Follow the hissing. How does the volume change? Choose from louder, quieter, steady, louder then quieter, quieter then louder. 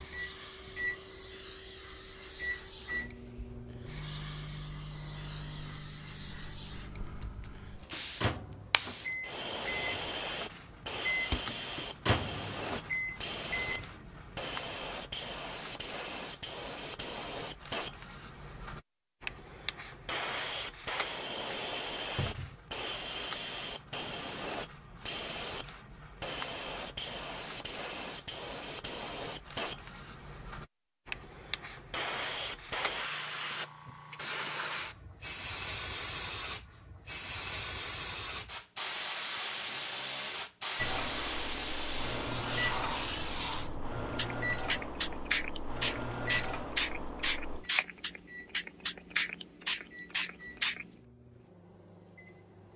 louder.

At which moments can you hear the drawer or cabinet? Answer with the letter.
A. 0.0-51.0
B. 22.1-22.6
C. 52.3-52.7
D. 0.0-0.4
B.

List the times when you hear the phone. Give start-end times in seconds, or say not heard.
not heard.